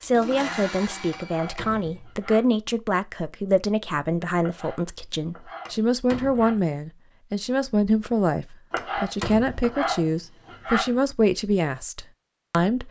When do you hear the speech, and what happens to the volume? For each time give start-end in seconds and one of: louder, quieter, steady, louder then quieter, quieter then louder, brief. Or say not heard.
0.0-12.8 steady.